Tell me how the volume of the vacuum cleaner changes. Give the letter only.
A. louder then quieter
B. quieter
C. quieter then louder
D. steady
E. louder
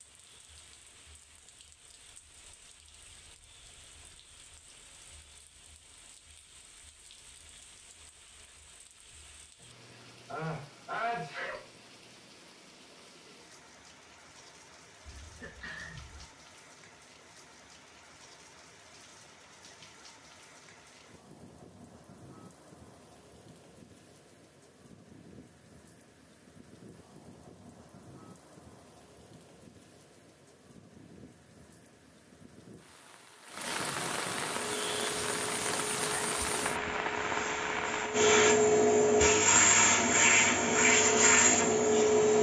E.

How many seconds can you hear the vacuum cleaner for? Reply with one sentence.
You can hear the vacuum cleaner for 8 seconds altogether.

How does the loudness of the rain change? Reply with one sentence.
The volume of the rain goes up.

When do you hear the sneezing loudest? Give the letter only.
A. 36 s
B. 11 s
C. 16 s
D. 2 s
B.